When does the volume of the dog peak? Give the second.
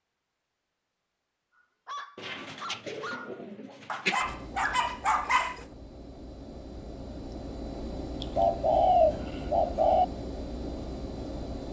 5 s.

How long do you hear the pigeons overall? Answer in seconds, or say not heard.
4 s.